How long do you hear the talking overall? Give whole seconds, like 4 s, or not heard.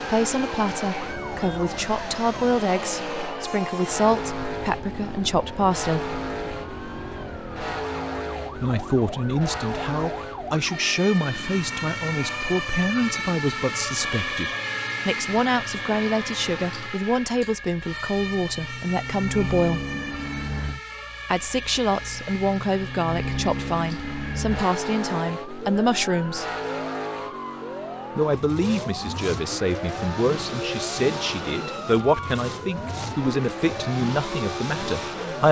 30 s.